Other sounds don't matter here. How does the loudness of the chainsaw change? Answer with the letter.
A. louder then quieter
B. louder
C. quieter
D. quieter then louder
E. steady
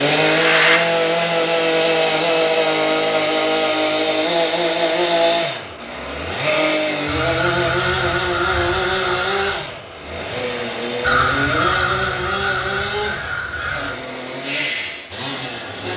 C.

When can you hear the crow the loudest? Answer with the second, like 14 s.
11 s.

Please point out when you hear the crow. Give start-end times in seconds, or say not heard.
7.0-9.6, 11.0-13.9.